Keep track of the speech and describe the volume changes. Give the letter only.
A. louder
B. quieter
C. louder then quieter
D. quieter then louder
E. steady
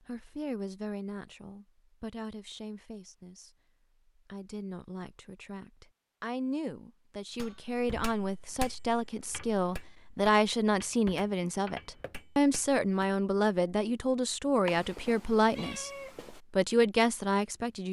A.